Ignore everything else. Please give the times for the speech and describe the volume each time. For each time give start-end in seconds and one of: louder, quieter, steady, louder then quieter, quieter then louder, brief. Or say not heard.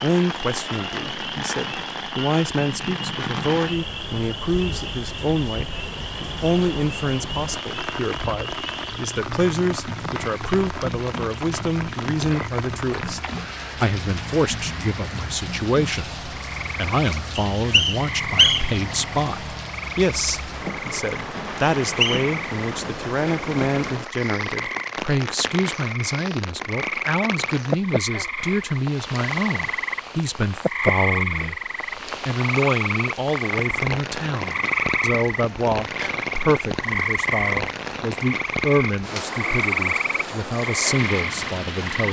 0.0-31.6 steady
32.2-42.0 steady.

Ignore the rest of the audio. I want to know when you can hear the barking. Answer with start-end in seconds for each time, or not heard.
not heard.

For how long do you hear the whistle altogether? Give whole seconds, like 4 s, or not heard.
2 s.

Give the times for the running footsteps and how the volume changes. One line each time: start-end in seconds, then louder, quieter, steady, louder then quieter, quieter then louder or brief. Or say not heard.
not heard.